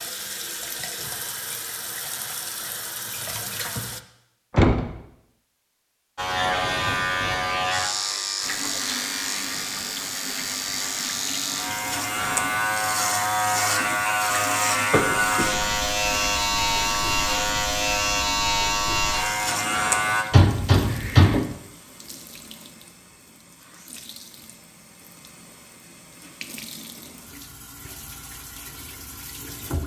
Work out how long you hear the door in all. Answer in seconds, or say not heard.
2 s.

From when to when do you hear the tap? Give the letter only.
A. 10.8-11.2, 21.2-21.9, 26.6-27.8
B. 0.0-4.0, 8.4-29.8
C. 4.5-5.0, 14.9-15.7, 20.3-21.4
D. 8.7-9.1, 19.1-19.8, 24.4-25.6
B.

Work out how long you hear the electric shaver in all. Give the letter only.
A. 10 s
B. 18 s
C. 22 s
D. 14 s
D.